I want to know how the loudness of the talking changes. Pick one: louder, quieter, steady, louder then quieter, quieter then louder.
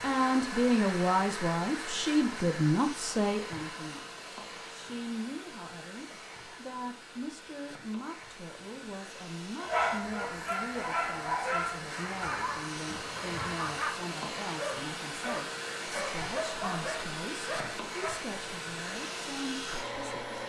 quieter.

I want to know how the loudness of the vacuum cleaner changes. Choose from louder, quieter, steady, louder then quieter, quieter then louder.
quieter then louder.